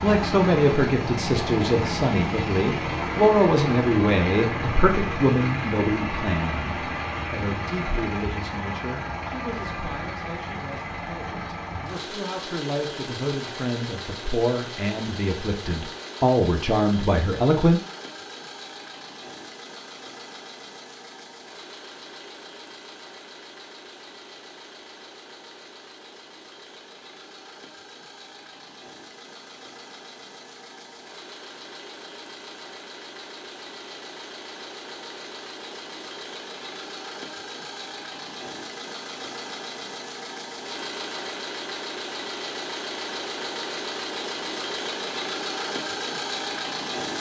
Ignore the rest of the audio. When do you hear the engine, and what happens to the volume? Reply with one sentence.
The engine can be heard from 0.0 to 47.1 s, getting quieter then louder.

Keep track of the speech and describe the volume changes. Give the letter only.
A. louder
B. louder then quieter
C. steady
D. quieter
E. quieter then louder
E.